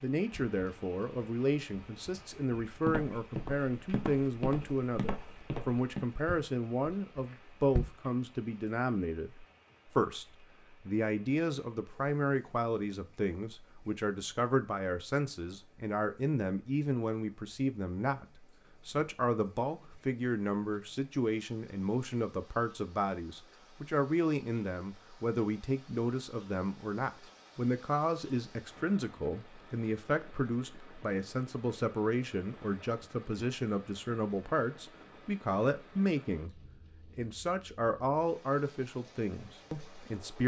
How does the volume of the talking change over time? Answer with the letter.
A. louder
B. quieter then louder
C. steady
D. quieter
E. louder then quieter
C.